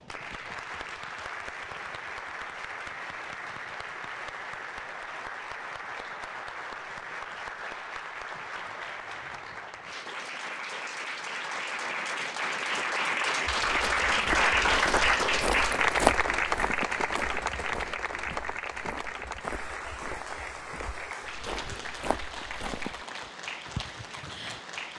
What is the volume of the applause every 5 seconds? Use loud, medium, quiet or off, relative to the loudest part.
medium, medium, loud, loud, medium.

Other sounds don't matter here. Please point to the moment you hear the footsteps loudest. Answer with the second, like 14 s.
16 s.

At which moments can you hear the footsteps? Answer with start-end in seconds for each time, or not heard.
13.6-23.1.